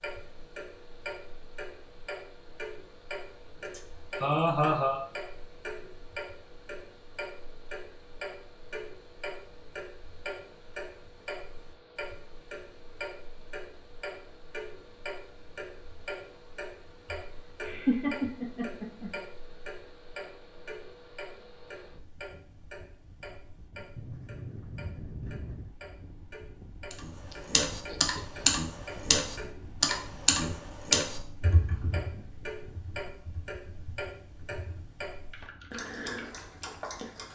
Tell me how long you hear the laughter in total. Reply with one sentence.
You can hear the laughter for 5 seconds altogether.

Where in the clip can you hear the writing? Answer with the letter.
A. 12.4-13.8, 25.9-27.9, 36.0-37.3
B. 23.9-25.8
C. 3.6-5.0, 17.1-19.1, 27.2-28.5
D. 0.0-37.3
B.